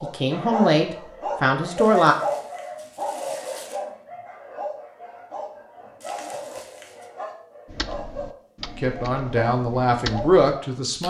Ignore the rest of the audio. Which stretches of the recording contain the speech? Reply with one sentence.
You can hear the speech from 0.0 to 2.1 s and from 8.8 to 11.0 s.